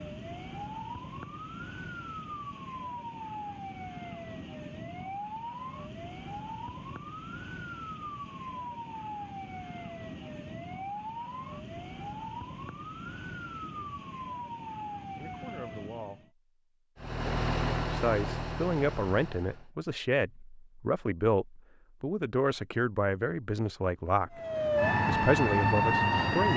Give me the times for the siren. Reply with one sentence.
You can hear the siren from 0.0 to 16.3 s and from 24.4 to 26.5 s.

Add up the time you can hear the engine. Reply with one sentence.
You can hear the engine for 3 seconds altogether.